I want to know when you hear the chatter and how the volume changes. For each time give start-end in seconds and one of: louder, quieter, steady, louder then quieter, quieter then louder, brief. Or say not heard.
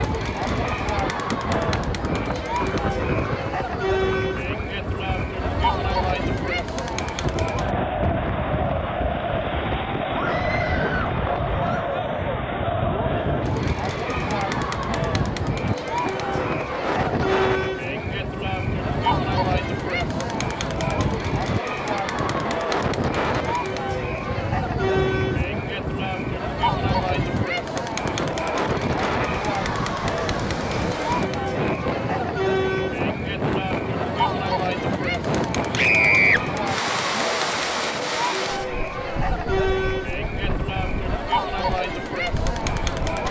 0.0-43.2 steady.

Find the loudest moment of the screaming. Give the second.
36 s.